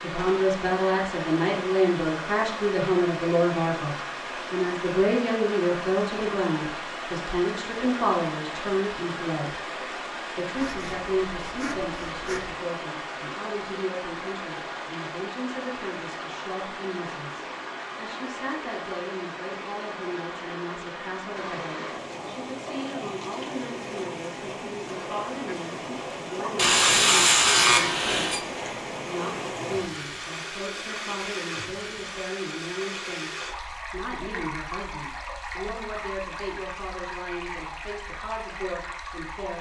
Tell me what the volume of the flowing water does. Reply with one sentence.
The loudness of the flowing water stays about the same.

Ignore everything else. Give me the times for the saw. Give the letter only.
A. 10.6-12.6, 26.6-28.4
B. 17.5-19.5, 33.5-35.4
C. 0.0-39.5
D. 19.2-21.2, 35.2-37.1
A.